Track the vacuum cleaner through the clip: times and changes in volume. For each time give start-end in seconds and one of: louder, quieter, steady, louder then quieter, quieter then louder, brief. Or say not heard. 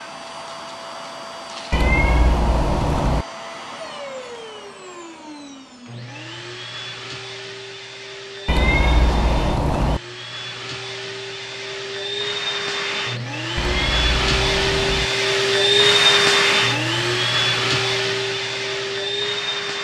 0.0-19.7 louder.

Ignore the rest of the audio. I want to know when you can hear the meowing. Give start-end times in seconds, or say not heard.
1.7-3.2, 8.4-10.0, 13.6-15.1.